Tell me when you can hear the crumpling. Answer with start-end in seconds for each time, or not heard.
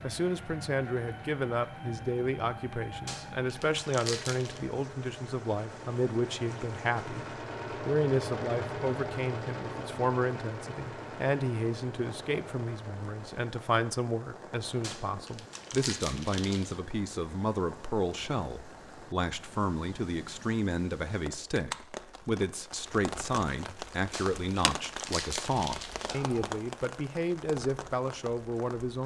3.0-4.6, 14.8-16.8, 24.1-26.2.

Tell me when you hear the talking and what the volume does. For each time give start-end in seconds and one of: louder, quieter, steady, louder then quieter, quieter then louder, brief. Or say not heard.
0.0-29.0 steady.